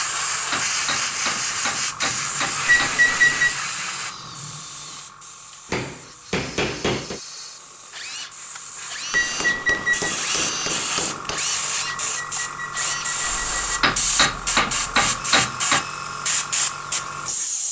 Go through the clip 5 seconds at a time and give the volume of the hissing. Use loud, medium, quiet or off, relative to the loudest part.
loud, quiet, loud, loud.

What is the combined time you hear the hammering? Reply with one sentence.
The hammering can be heard for 8 seconds in total.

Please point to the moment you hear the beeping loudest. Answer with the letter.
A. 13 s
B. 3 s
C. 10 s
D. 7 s
B.